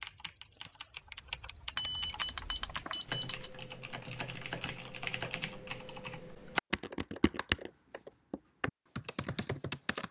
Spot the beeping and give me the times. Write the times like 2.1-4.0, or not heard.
1.8-3.5.